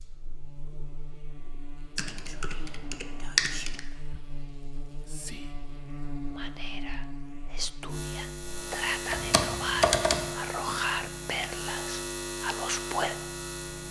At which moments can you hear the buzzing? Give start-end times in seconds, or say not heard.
0.0-13.8.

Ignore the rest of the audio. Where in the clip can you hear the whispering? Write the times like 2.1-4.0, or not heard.
2.1-13.2.